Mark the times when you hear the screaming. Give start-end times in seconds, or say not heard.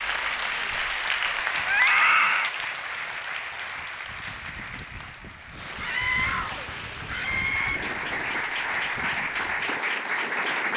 1.6-2.5, 5.8-7.8.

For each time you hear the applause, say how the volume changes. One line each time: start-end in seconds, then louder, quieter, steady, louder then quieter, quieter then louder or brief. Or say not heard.
0.0-10.7 quieter then louder.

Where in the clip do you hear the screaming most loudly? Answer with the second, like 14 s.
2 s.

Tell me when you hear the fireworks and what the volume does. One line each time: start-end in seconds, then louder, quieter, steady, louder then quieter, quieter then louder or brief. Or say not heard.
not heard.